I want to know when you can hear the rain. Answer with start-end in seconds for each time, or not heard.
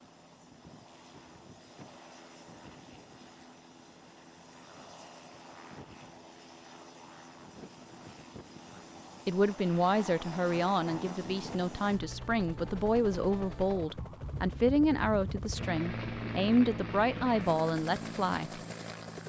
not heard.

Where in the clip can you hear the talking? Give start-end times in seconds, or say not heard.
9.2-18.5.